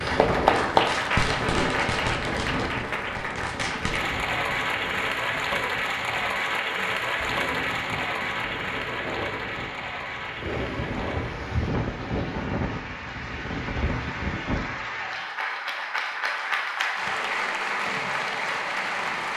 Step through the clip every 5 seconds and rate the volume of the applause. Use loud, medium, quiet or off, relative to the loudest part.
loud, loud, medium, loud.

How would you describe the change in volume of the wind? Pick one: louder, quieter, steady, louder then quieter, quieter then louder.
quieter then louder.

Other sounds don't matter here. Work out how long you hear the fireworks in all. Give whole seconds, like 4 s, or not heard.
4 s.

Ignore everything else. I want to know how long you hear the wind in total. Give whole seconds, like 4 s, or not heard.
15 s.